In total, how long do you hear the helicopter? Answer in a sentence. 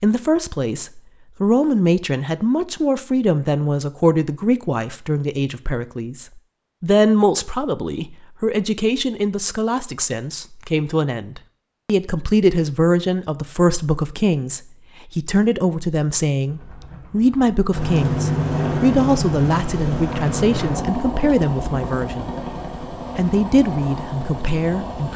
The helicopter can be heard for 9 seconds in total.